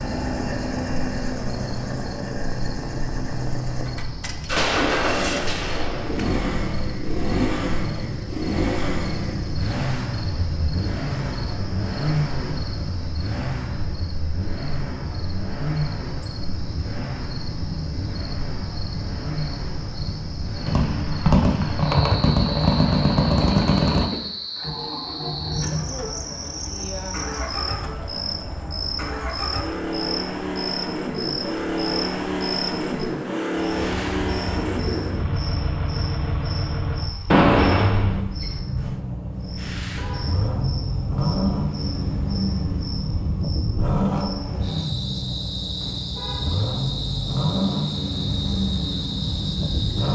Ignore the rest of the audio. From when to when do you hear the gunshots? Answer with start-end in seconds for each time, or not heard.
4.5-6.3, 20.6-24.1, 37.3-38.6.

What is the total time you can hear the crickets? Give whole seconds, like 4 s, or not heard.
50 s.